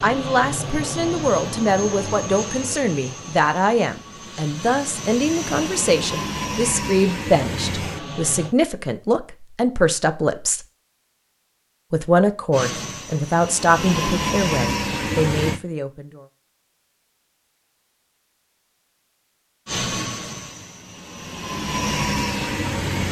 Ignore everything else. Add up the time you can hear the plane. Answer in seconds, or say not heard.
15 s.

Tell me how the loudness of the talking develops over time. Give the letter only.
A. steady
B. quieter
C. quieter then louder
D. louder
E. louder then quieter
A.